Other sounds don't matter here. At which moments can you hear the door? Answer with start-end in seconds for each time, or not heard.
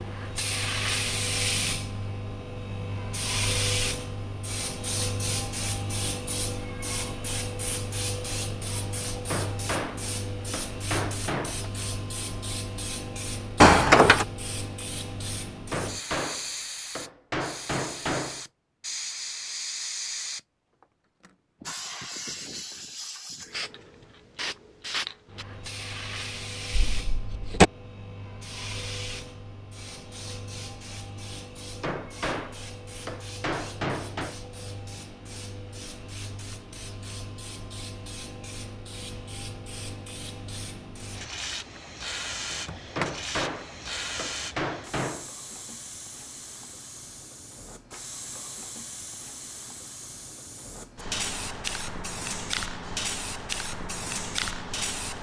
13.6-14.2, 26.7-27.7, 42.5-43.1.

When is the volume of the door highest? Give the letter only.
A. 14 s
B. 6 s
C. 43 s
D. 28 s
A.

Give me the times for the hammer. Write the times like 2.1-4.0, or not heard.
9.3-11.7, 15.7-18.4, 31.8-34.4, 43.0-45.3.